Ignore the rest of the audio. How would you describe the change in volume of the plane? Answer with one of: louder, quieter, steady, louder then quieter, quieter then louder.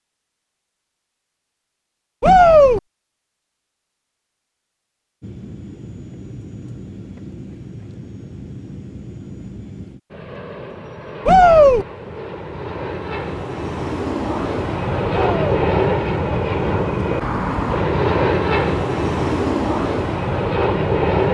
louder.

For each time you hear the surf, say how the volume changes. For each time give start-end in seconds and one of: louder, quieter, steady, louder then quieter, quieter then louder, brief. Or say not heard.
not heard.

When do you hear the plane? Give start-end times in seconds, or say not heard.
5.2-21.2.